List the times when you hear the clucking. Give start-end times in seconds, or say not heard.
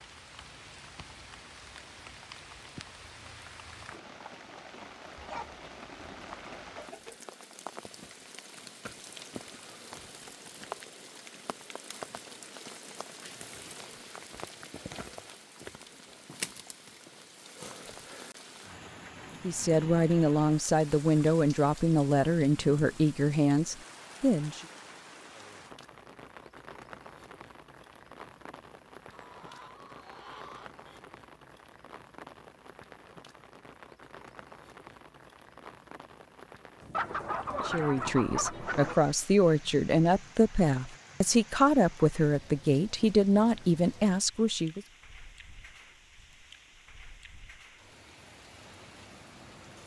5.2-7.2, 29.1-31.1, 36.9-39.0.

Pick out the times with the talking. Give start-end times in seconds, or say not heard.
19.4-24.6, 37.6-44.9.